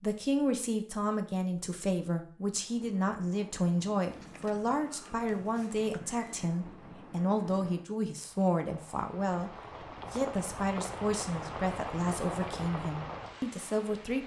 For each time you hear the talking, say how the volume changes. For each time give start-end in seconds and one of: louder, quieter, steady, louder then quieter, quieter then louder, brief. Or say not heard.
0.0-14.2 steady.